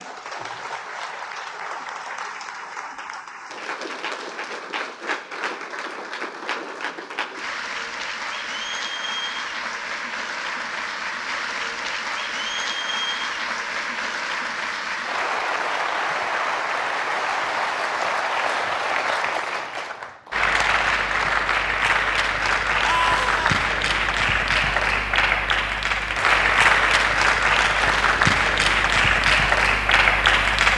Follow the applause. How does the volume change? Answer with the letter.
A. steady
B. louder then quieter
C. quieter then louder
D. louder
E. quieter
D.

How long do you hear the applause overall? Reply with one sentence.
The applause can be heard for 31 seconds in total.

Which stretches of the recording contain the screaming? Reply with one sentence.
You can hear the screaming from 22.9 to 23.6 s.